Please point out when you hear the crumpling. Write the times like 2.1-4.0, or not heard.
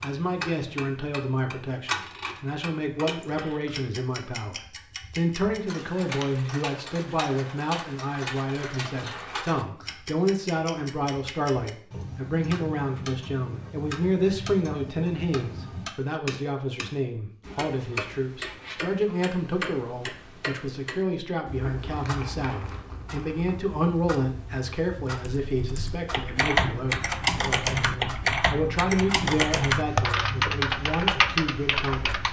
8.6-9.4, 21.6-23.5.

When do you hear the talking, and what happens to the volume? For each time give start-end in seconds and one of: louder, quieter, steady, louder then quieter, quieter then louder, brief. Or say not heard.
0.0-32.2 steady.